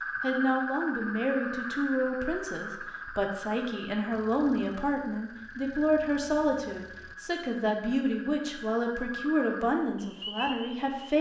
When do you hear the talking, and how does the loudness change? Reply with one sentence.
You can hear the talking from 0.2 to 11.1 s, at a steady volume.